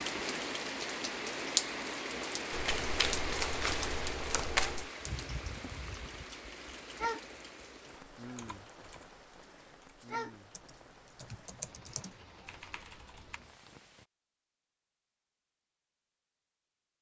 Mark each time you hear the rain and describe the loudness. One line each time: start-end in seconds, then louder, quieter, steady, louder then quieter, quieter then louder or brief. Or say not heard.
0.0-14.1 quieter.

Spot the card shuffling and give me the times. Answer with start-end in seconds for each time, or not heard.
2.5-4.9.